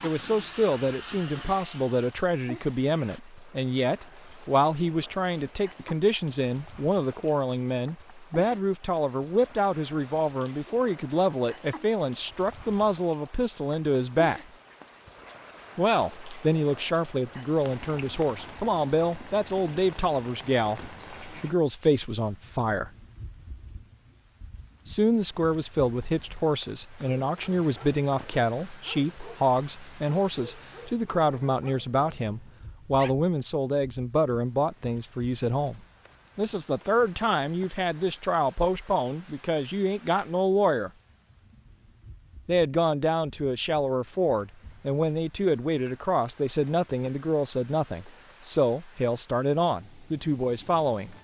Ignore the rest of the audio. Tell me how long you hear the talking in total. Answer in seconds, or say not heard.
46 s.